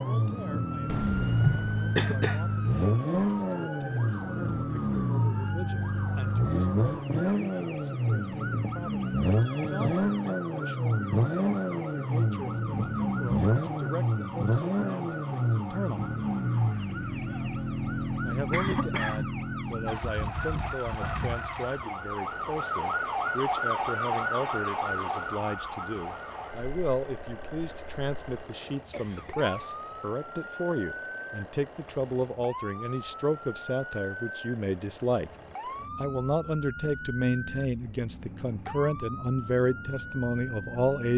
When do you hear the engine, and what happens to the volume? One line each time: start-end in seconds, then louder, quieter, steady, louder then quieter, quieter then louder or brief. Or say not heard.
0.0-41.1 quieter.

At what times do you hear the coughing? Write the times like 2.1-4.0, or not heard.
0.8-2.6, 18.5-19.3, 28.9-29.6.